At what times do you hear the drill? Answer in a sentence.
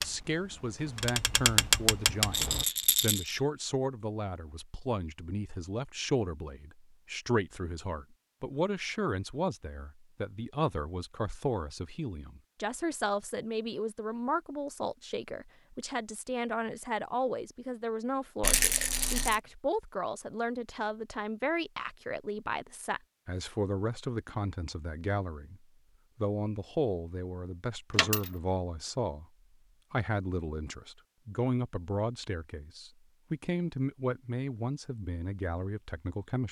The drill can't be heard in this clip.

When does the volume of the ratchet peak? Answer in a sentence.
The loudest moment of the ratchet is at 2 seconds.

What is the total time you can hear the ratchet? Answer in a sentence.
You can hear the ratchet for 3 seconds altogether.